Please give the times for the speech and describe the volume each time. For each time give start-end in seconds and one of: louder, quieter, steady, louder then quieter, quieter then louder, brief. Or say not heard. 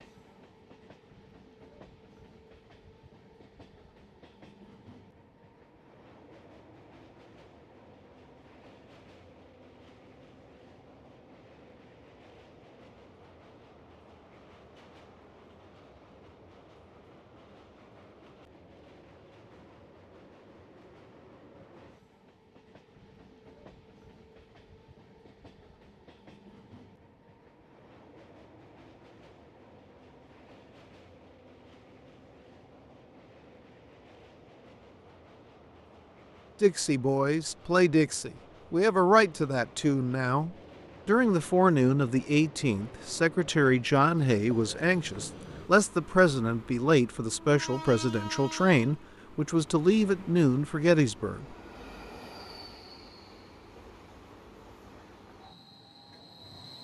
36.6-51.5 steady.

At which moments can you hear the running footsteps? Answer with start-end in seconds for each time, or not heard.
not heard.